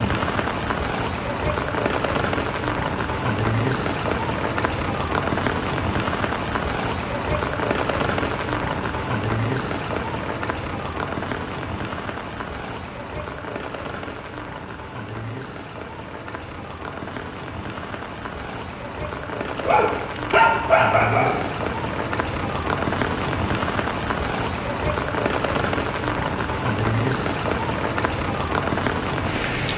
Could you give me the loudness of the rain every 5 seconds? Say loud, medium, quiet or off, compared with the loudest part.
loud, loud, medium, medium, loud, loud.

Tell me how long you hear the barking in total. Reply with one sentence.
The barking can be heard for 2 seconds in total.